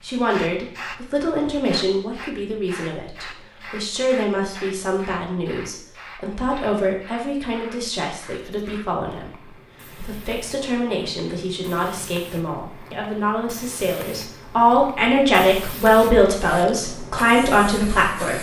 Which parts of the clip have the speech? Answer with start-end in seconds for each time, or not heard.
0.0-18.3.